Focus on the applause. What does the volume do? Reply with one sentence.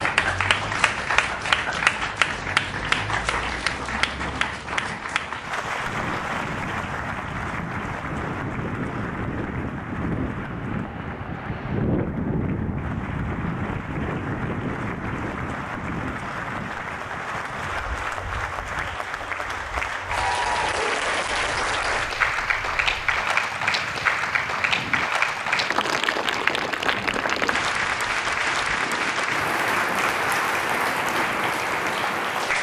The volume of the applause goes down, then up.